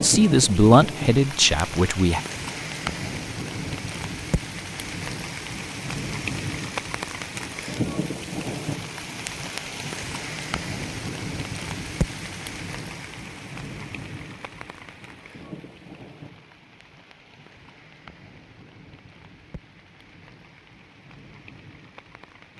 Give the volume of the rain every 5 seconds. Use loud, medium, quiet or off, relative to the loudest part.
loud, loud, loud, quiet, quiet.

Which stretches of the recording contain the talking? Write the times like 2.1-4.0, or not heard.
0.0-2.2.